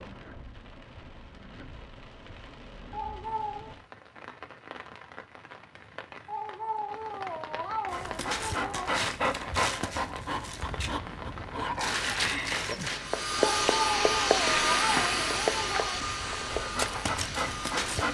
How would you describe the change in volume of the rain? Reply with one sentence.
The volume of the rain goes up.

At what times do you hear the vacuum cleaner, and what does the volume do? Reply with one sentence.
The vacuum cleaner can be heard from 12.9 to 18.0 s, getting quieter.